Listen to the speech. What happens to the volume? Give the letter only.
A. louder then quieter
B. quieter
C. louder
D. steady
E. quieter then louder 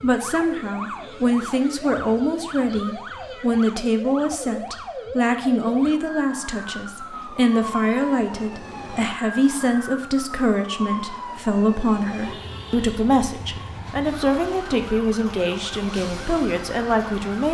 D.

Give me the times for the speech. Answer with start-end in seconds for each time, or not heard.
0.0-17.4.